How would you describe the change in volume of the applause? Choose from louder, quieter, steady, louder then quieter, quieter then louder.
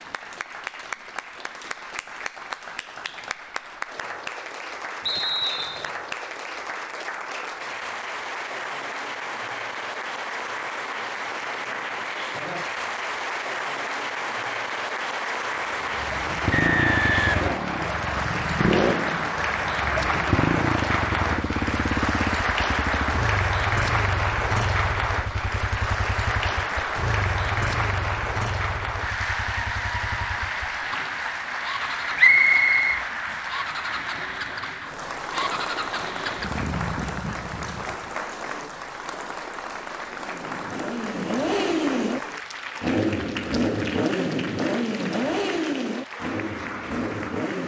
louder then quieter.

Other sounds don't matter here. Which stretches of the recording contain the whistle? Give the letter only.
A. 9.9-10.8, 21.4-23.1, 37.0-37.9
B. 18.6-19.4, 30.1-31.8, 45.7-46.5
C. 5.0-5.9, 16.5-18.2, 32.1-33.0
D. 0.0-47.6
C.